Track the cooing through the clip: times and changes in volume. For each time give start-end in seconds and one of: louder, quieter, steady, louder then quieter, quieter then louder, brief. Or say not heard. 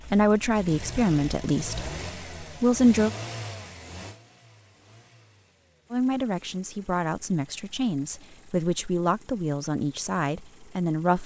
not heard.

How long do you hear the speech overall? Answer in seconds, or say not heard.
8 s.